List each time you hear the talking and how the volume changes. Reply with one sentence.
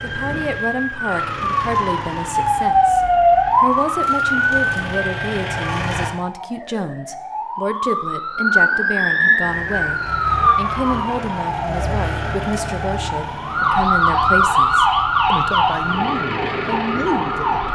The talking can be heard from 0.0 to 17.7 s, at a steady volume.